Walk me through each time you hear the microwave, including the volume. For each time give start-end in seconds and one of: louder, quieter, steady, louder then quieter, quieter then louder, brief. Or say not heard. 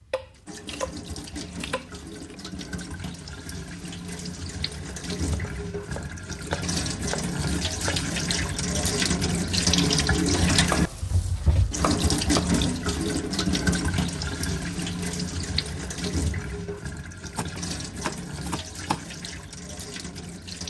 not heard.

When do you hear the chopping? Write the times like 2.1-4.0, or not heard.
0.1-2.4, 5.2-8.0, 10.7-12.6, 17.4-19.0.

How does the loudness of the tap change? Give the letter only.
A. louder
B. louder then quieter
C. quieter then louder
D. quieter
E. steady
B.